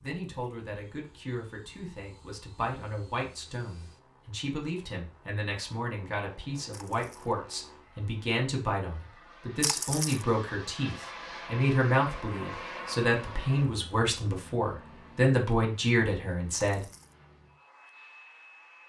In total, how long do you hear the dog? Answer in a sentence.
The dog can't be heard in this clip.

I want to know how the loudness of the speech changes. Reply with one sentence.
The volume of the speech goes up.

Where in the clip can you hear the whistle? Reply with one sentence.
You can't hear the whistle here.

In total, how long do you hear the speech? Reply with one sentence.
You can hear the speech for 17 seconds altogether.